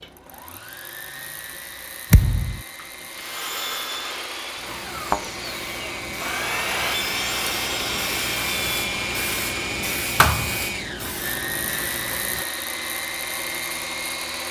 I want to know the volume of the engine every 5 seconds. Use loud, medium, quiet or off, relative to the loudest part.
medium, loud, loud.